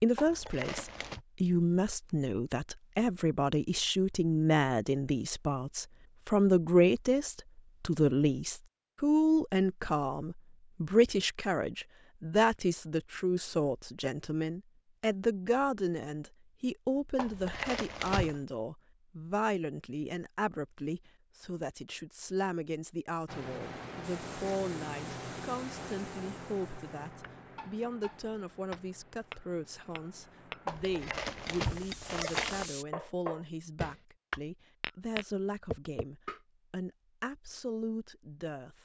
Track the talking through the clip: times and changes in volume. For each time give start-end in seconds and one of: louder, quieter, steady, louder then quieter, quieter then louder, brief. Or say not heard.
0.0-38.8 quieter.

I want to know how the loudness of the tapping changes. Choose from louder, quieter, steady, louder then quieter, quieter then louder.
louder.